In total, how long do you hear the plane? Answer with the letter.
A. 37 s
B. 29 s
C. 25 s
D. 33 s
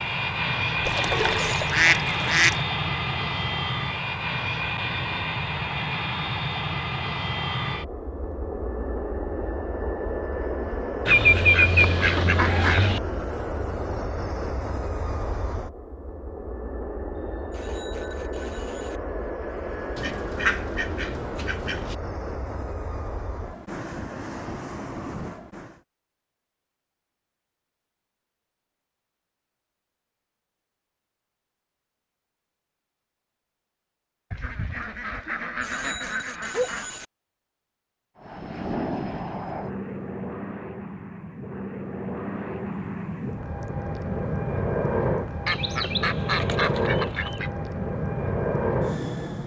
A.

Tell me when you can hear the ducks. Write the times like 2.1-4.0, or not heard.
0.8-2.6, 11.1-13.0, 19.9-21.9, 34.3-37.0, 45.5-47.5.